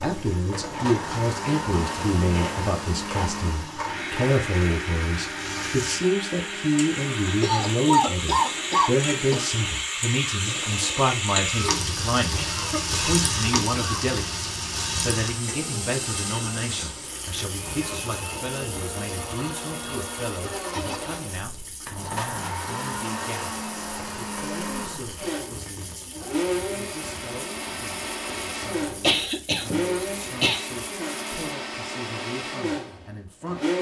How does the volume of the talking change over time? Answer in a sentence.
The loudness of the talking goes down.